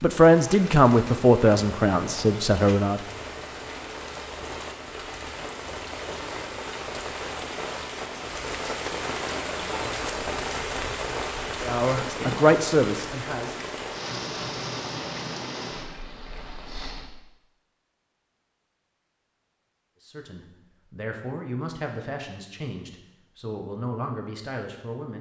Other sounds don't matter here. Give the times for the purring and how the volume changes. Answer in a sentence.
You can't hear the purring here.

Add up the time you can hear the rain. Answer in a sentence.
You can hear the rain for 17 seconds altogether.